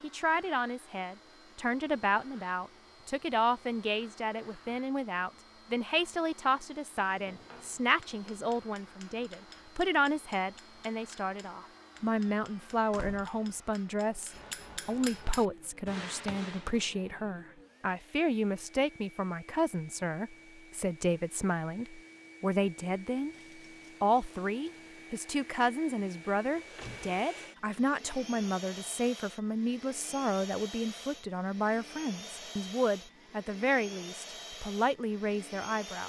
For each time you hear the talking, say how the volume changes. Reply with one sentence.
The talking can be heard from 0.0 to 23.4 s, at a steady volume; and from 24.0 to 36.0 s, at a steady volume.